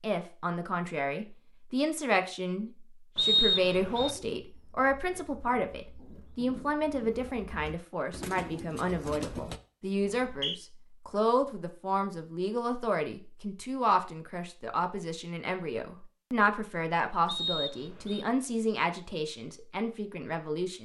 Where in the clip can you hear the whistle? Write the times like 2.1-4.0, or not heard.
3.1-4.2, 10.0-10.6, 17.2-18.2.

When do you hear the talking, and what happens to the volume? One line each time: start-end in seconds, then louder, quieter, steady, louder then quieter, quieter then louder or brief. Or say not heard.
0.0-20.7 steady.